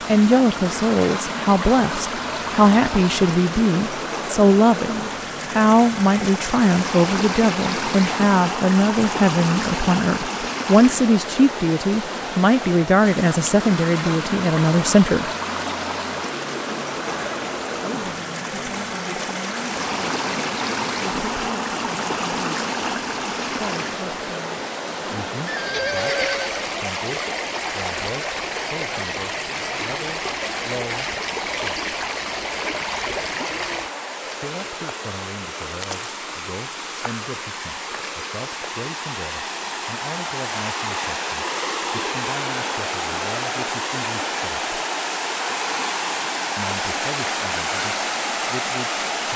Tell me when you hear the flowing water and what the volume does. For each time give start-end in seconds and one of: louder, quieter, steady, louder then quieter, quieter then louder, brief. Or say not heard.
0.0-49.3 steady.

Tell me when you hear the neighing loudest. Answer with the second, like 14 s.
26 s.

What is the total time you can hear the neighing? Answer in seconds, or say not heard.
2 s.